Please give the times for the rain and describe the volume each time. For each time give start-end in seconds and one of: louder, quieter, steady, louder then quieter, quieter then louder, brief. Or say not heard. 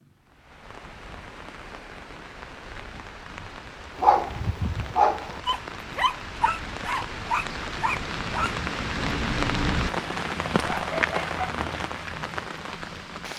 0.0-13.3 louder.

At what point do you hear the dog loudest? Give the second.
4 s.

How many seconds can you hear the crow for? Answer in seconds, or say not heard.
not heard.